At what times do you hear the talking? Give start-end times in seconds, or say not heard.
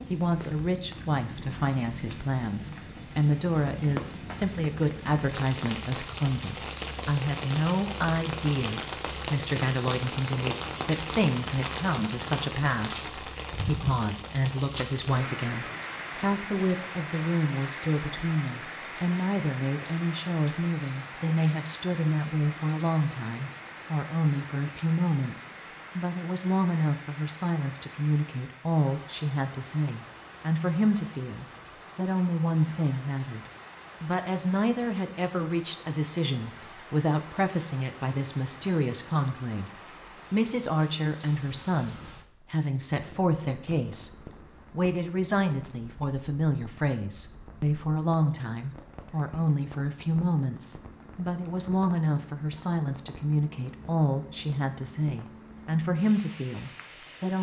0.1-33.4, 34.0-44.1, 44.7-57.3.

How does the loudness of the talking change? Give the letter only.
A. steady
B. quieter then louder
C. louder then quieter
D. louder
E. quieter
A.